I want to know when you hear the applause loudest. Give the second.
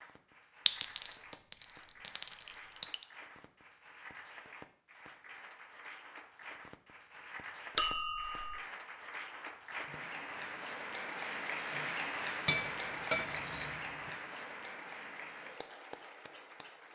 12 s.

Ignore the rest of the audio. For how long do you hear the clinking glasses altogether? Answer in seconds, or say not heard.
5 s.